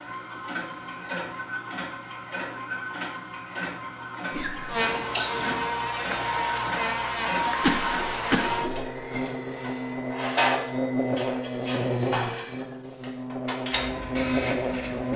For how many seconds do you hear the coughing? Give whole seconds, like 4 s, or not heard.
3 s.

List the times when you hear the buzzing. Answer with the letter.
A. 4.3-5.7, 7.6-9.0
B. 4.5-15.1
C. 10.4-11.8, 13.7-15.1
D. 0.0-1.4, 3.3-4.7
B.